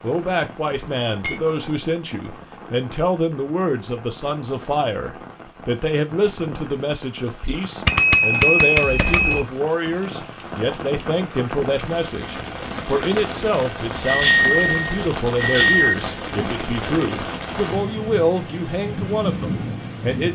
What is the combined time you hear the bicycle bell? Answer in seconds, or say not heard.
4 s.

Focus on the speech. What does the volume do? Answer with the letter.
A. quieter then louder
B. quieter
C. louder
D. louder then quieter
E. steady
E.